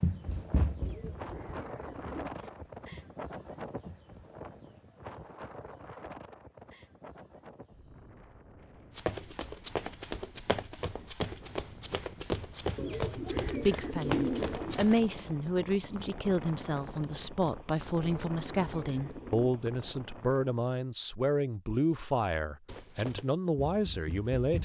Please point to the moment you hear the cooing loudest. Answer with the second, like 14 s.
14 s.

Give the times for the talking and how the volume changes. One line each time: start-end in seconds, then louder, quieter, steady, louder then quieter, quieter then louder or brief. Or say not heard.
13.4-24.6 steady.